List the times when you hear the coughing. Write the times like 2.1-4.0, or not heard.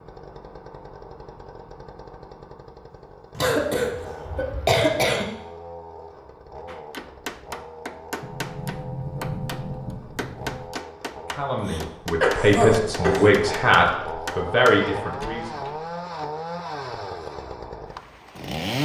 3.4-5.2, 11.6-13.3.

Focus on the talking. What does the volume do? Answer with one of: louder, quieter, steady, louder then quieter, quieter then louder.
louder.